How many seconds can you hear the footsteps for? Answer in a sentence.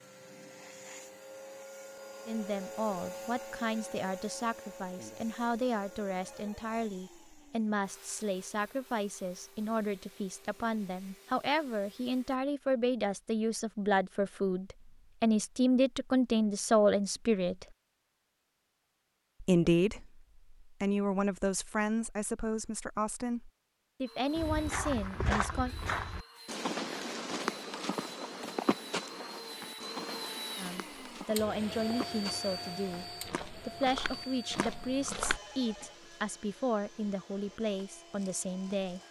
The footsteps can be heard for 11 seconds in total.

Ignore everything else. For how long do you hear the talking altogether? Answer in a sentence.
The talking can be heard for 30 seconds in total.